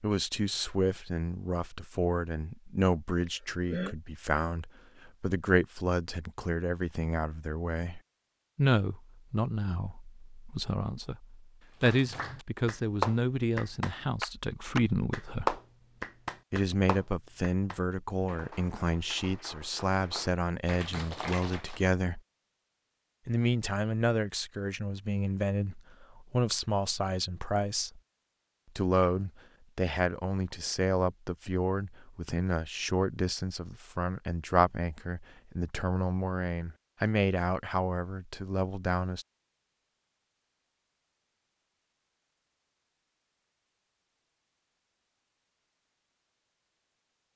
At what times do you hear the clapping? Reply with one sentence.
The clapping can be heard from 11.8 to 21.9 s.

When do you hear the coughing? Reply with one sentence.
The coughing can be heard from 3.0 to 4.0 s.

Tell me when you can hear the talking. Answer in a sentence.
The talking can be heard from 0.0 to 15.6 s, from 16.5 to 22.2 s, from 23.2 to 28.0 s and from 28.8 to 39.2 s.